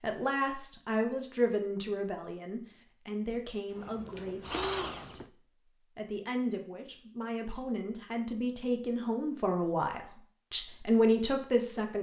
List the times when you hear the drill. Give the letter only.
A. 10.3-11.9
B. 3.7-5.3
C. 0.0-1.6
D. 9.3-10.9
B.